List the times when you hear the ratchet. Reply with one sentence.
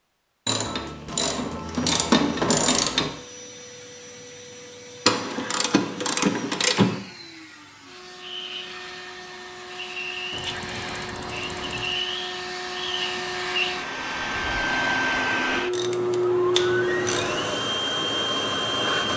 You can hear the ratchet from 0.5 to 3.2 s, from 5.0 to 7.0 s, from 10.3 to 12.0 s and from 15.7 to 17.4 s.